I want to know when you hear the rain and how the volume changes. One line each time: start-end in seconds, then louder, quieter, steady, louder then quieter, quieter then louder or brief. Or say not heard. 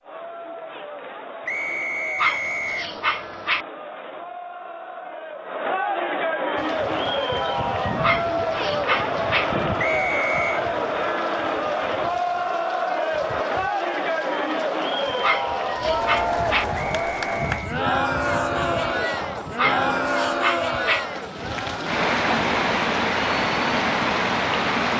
6.5-24.9 quieter then louder.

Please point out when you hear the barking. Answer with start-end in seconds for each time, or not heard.
2.1-3.6, 8.0-9.4, 15.2-16.6, 19.6-21.0.